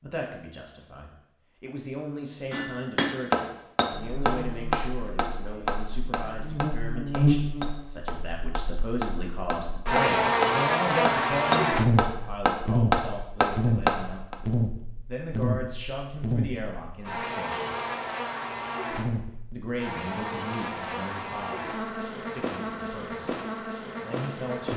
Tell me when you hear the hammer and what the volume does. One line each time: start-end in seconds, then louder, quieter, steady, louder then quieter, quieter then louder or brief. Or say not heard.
2.5-14.3 quieter then louder.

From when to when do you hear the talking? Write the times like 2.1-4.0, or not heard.
0.0-17.7, 19.5-24.7.